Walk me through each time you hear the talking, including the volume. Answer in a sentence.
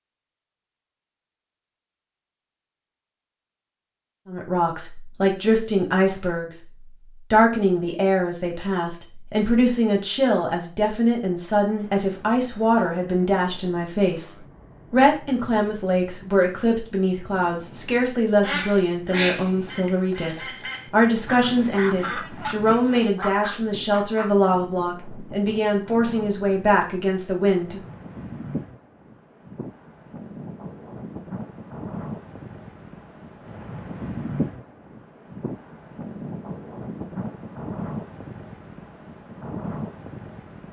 You can hear the talking from 4.2 to 27.8 s, at a steady volume.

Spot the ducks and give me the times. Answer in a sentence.
The ducks can be heard from 18.4 to 24.4 s.